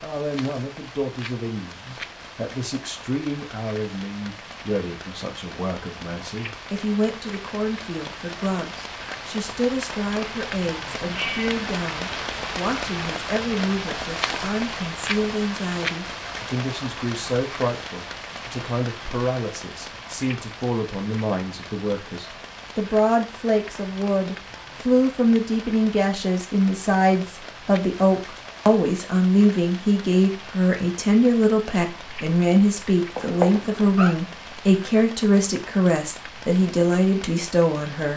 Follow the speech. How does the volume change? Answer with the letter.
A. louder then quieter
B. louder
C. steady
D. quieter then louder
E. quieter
B.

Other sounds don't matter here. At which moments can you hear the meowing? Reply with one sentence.
The meowing can be heard from 11.0 to 11.7 s and from 33.1 to 34.1 s.